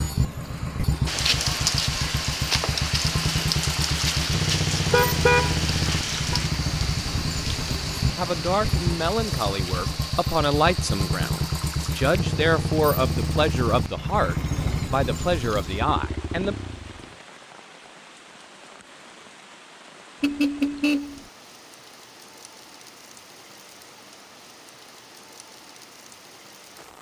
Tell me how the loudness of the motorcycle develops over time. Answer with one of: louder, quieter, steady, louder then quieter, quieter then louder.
steady.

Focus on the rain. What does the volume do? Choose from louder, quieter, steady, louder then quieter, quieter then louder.
quieter.